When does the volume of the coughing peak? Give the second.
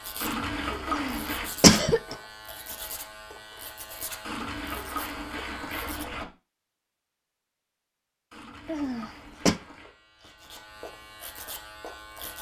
2 s.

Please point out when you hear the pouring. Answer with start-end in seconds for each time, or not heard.
0.2-1.5, 4.2-6.2, 8.3-9.9.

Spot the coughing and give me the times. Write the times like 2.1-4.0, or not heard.
0.9-2.1, 8.7-9.6.